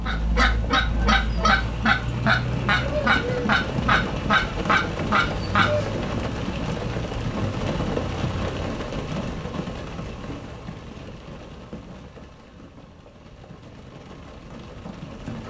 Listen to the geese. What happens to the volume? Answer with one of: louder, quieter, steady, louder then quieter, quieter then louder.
steady.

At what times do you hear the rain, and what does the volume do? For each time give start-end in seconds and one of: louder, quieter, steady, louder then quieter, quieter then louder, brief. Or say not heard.
0.0-15.4 quieter.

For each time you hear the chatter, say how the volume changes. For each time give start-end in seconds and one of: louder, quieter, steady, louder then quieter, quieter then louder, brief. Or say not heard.
not heard.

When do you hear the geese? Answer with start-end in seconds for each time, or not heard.
0.1-5.9.